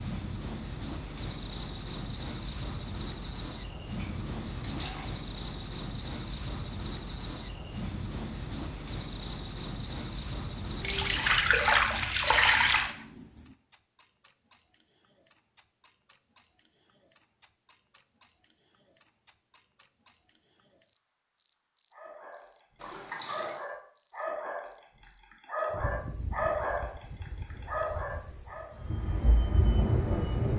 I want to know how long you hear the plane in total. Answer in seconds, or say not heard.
2 s.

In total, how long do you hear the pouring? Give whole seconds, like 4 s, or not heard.
4 s.